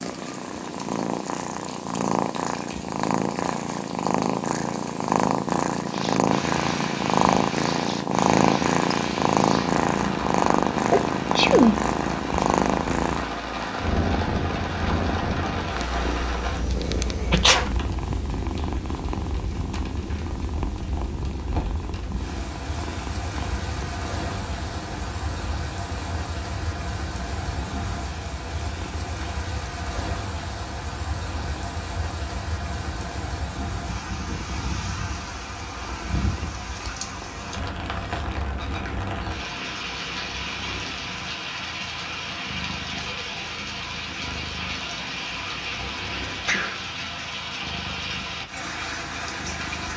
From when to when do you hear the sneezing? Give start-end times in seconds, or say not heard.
10.9-11.8, 17.3-18.1, 46.0-46.8.